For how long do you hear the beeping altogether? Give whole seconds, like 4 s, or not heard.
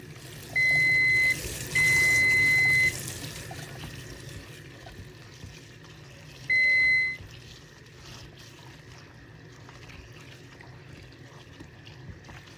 3 s.